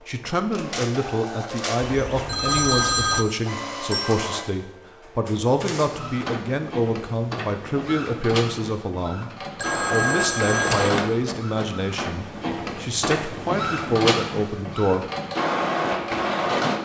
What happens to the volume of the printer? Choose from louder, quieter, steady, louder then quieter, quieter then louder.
louder.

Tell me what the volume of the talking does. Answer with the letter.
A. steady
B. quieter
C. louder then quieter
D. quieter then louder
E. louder
A.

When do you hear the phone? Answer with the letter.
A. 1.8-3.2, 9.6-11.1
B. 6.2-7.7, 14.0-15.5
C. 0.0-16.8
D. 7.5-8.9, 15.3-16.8
A.